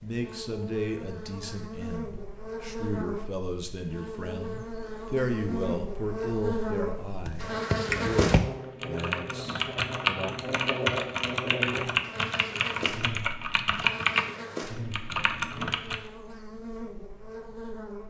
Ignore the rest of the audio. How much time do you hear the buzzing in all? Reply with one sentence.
The buzzing can be heard for 18 seconds in total.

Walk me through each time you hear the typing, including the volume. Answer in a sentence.
You can hear the typing from 7.2 to 16.0 s, at a steady volume.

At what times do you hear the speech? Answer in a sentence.
The speech can be heard from 0.0 to 10.3 s.